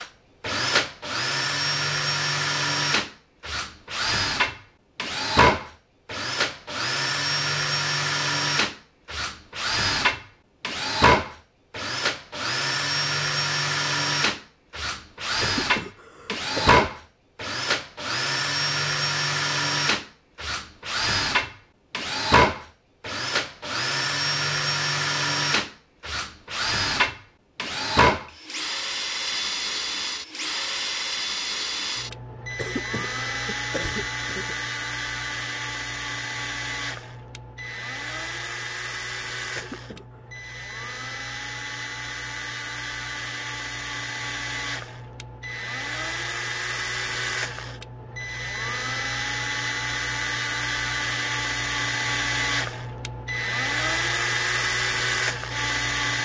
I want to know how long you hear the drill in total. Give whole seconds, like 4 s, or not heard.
56 s.